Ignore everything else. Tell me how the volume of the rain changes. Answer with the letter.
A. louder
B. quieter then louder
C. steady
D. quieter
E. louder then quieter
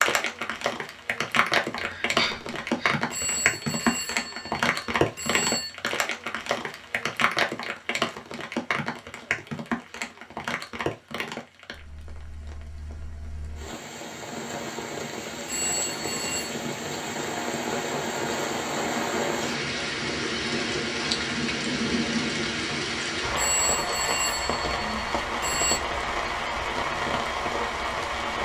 B.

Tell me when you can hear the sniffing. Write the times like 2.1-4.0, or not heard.
1.8-3.0.